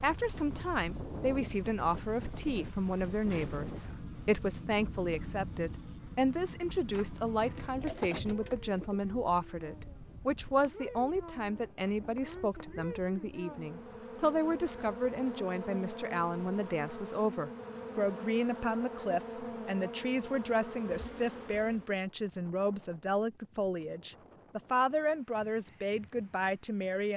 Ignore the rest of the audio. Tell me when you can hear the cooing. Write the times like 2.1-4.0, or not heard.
7.4-9.0.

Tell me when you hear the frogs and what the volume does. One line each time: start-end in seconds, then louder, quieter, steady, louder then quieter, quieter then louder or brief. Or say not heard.
not heard.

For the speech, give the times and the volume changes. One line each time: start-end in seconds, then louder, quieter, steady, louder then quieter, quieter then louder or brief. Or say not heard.
0.0-27.1 steady.